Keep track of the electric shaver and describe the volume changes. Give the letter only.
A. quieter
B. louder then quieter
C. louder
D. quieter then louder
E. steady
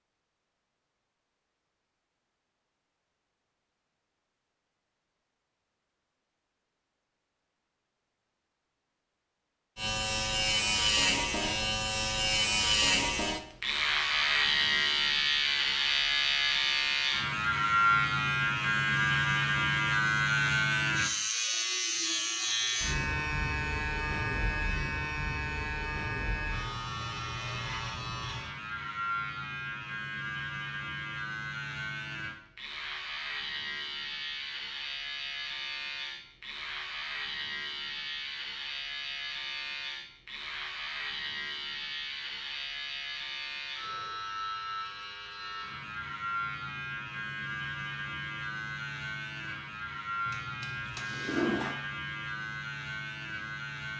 A.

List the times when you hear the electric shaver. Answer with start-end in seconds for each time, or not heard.
9.8-53.9.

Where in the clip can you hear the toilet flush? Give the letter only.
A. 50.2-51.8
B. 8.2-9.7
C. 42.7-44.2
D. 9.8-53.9
A.